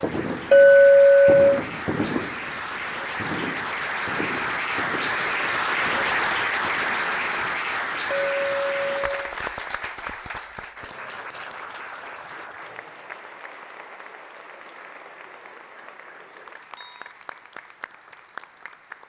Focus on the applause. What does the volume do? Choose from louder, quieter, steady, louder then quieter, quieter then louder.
louder then quieter.